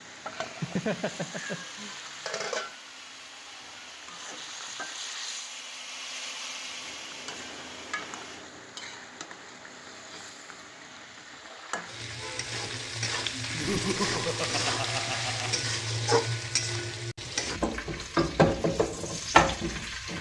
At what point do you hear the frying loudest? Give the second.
19 s.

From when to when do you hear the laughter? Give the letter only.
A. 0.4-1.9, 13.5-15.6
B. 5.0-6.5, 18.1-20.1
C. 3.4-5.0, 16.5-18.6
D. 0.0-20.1
A.